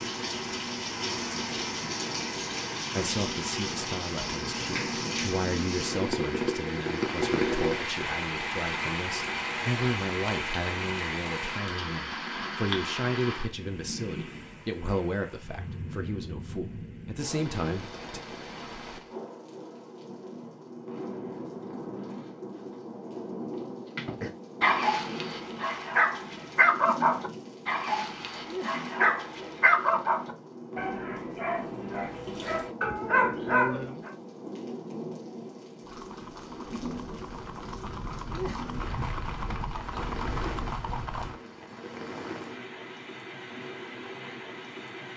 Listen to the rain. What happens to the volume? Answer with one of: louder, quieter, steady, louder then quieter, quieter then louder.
quieter.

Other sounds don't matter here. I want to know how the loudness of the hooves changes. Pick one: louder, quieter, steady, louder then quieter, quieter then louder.
louder.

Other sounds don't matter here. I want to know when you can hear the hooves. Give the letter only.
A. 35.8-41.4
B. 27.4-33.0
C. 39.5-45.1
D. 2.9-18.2
A.